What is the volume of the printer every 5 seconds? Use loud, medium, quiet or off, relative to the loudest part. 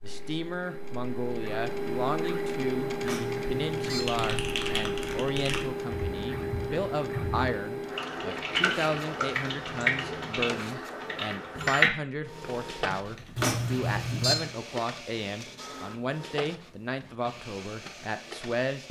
loud, loud, medium, medium.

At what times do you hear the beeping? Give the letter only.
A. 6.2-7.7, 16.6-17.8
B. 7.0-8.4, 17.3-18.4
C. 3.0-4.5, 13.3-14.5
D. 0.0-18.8
C.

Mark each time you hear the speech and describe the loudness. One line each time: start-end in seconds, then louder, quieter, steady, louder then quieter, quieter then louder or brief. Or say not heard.
0.0-18.8 steady.